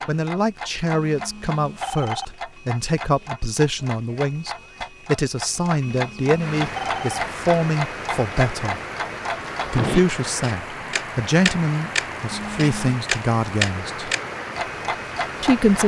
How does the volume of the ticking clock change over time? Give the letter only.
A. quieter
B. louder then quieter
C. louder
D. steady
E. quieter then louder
C.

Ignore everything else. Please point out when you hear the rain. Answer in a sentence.
You can hear the rain from 6.3 to 15.8 s.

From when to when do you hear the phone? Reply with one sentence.
The phone can be heard from 0.9 to 2.3 s, from 5.9 to 7.2 s and from 12.3 to 13.0 s.